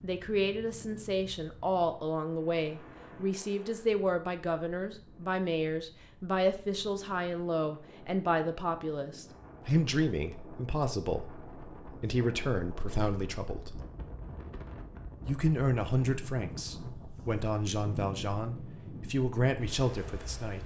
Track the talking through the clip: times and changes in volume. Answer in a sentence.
The talking can be heard from 0.0 to 13.8 s, at a steady volume; and from 15.2 to 20.6 s, getting quieter then louder.